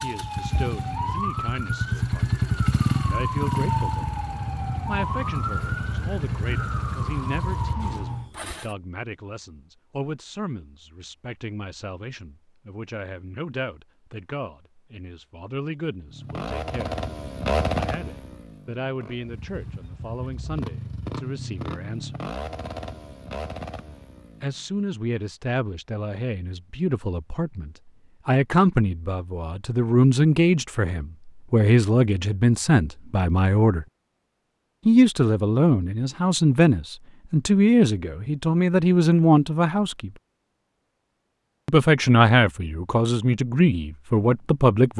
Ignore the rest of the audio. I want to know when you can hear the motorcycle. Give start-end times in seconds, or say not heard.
0.0-8.8, 16.1-24.6.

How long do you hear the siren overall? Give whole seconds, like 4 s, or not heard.
8 s.